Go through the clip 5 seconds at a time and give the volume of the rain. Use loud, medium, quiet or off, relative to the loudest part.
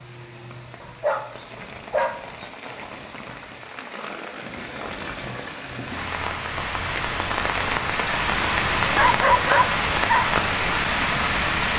quiet, loud, loud.